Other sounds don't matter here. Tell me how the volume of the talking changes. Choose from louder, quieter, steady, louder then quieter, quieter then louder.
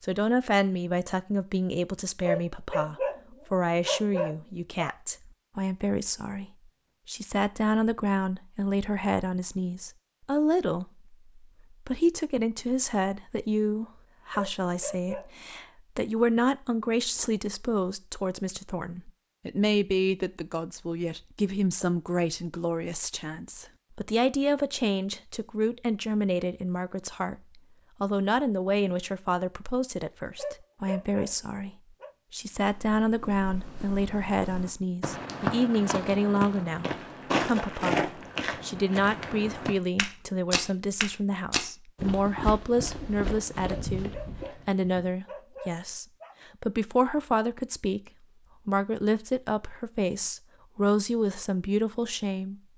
steady.